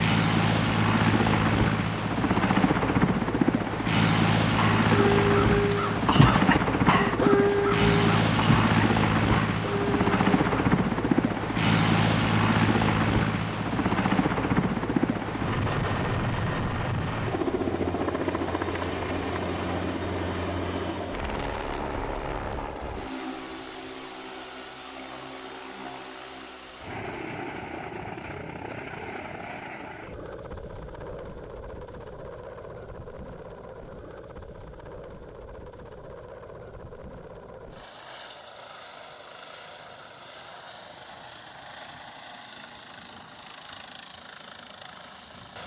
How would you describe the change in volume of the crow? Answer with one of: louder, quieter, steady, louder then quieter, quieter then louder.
quieter.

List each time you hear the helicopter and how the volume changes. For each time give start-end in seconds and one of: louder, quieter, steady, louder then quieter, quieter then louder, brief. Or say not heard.
0.0-45.6 quieter.